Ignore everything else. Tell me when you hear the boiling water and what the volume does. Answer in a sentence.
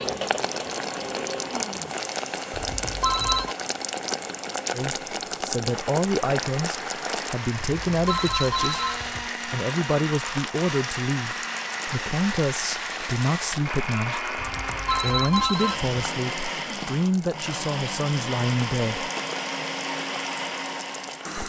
You can hear the boiling water from 0.0 to 21.4 s, getting quieter.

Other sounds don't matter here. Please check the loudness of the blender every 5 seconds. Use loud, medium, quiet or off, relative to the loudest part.
medium, loud, loud, loud, loud.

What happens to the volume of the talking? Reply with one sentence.
The volume of the talking stays about the same.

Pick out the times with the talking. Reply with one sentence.
The talking can be heard from 4.7 to 8.8 s and from 9.4 to 19.1 s.